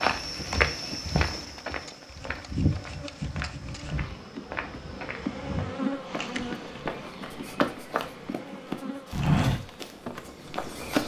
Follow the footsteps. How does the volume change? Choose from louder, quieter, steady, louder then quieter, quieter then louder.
quieter then louder.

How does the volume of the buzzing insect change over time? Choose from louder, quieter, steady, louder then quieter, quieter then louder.
louder then quieter.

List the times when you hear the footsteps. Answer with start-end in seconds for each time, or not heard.
0.0-11.0.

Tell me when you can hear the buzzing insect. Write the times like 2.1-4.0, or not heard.
0.1-10.8.